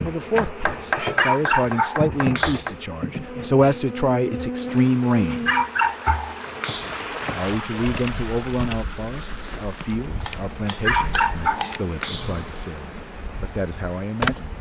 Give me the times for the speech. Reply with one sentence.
You can hear the speech from 0.0 to 5.5 s and from 7.3 to 14.5 s.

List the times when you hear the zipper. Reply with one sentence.
You can't hear the zipper here.